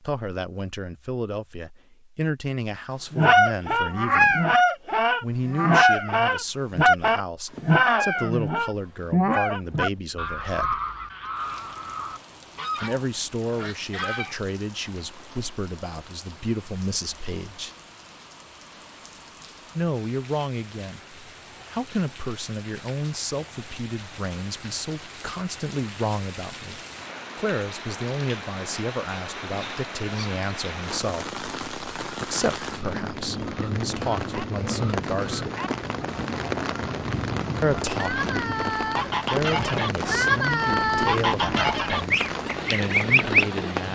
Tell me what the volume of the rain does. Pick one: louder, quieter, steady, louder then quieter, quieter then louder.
louder.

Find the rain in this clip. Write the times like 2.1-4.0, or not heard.
11.3-43.9.